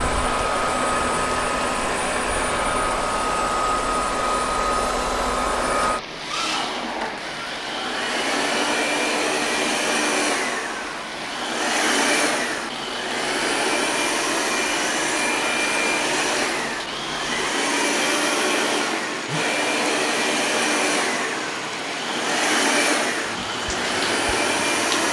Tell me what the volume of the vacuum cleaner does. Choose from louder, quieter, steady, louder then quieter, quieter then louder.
steady.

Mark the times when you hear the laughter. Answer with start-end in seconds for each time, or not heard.
not heard.